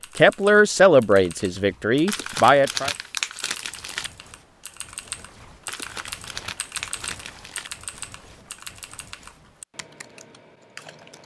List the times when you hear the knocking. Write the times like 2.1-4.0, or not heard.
not heard.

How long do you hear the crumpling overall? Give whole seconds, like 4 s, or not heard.
4 s.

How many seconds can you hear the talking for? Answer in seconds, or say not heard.
3 s.